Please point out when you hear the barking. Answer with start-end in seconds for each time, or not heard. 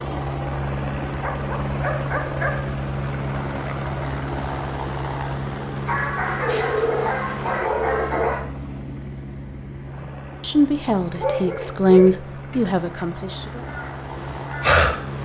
1.1-2.6, 5.8-8.4, 11.1-13.1.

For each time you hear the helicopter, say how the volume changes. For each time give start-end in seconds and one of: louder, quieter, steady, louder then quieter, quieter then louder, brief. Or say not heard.
0.0-15.1 quieter.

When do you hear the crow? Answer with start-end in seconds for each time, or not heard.
13.5-15.1.